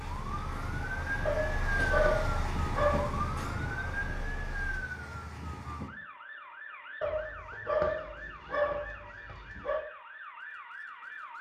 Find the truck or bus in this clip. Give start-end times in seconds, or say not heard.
0.0-4.8.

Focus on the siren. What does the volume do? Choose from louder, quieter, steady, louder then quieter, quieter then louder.
quieter.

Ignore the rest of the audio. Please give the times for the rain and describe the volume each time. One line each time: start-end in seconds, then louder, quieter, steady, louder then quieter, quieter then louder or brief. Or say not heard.
not heard.